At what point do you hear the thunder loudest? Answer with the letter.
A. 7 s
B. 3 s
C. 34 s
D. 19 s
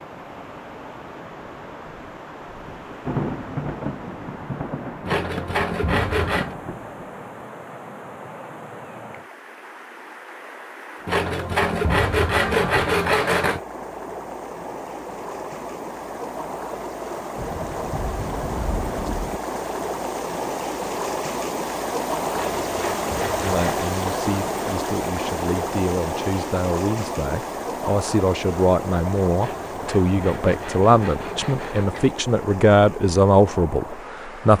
B.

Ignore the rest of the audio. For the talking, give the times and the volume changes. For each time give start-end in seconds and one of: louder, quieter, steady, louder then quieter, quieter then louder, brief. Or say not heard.
23.4-34.5 louder.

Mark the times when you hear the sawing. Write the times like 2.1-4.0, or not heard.
5.0-6.5, 11.1-13.6, 22.3-23.9, 29.4-32.1.